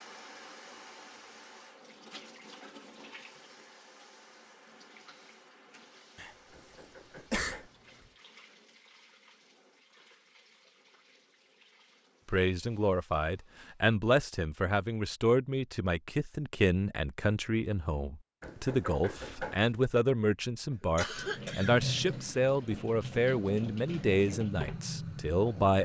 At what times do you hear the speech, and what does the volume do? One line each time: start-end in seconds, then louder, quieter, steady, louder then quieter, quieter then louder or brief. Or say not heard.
12.2-25.8 steady.